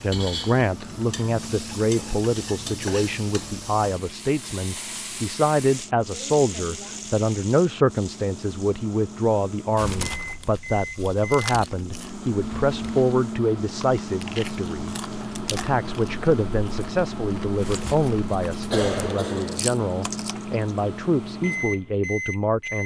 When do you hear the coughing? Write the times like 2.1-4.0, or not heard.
18.6-19.6.